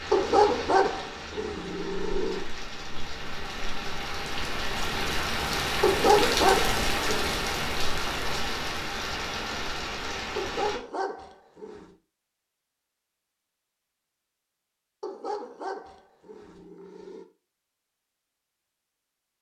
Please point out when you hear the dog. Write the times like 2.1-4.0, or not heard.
0.1-2.5, 5.8-7.4, 10.3-11.9, 15.0-17.2.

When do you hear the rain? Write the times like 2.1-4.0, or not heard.
0.0-10.8.